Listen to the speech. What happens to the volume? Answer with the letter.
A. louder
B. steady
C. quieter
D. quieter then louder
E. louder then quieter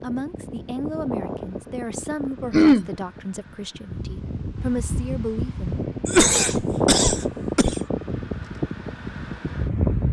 D.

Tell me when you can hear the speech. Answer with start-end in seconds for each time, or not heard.
0.0-5.8.